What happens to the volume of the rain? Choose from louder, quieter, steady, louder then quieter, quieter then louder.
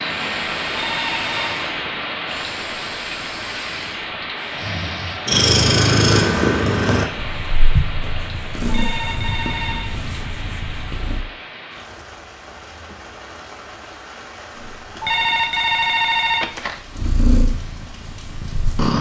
quieter.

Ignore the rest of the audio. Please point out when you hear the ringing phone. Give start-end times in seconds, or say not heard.
0.7-1.5, 8.7-9.9, 15.0-16.8.